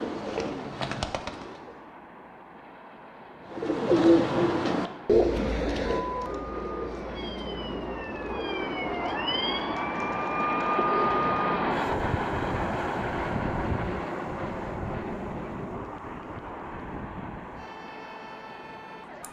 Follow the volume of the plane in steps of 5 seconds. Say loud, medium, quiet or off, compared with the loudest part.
quiet, medium, loud, medium.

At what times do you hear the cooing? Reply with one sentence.
You can hear the cooing from 0.0 to 1.9 s and from 3.5 to 11.4 s.